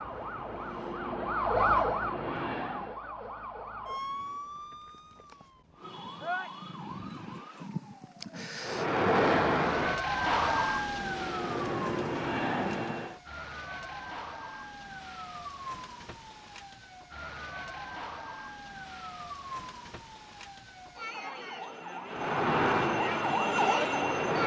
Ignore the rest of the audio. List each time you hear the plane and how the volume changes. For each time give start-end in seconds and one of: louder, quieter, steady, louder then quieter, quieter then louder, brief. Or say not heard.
0.0-3.0 brief
8.6-13.2 quieter then louder
22.1-24.4 brief.